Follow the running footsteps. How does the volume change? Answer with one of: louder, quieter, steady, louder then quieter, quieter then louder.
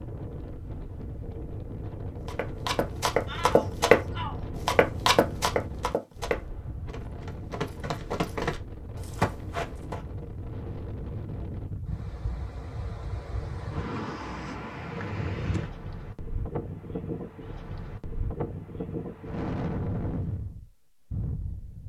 quieter then louder.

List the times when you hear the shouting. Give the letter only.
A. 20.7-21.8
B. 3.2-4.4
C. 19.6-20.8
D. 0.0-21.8
B.